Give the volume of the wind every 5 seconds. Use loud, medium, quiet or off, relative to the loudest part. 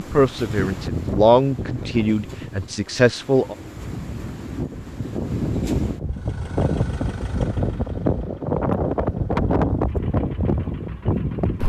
medium, loud, loud.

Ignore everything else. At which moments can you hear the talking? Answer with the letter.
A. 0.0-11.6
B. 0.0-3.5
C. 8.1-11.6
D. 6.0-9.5
B.